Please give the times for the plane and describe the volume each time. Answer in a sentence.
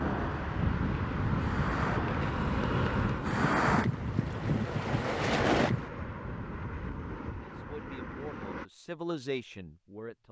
You can hear the plane from 0.0 to 8.7 s, getting quieter.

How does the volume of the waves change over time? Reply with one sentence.
The loudness of the waves goes up.